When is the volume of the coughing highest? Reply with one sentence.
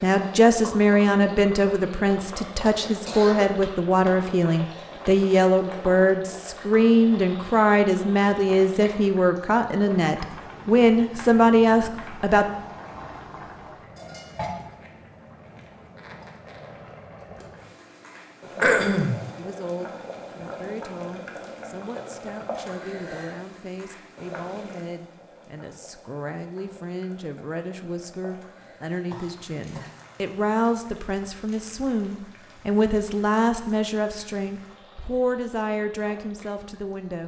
The volume of the coughing peaks at 19 seconds.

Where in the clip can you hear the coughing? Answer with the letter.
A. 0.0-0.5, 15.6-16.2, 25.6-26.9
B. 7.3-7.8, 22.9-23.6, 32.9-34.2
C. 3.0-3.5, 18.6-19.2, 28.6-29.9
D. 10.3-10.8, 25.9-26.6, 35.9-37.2
C.